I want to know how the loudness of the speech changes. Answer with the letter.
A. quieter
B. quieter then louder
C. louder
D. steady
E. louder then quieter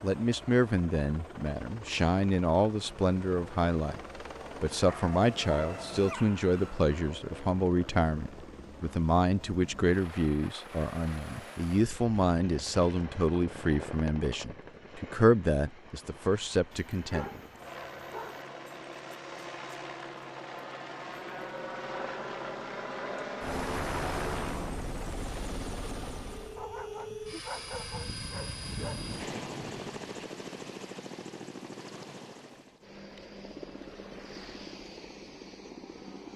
D.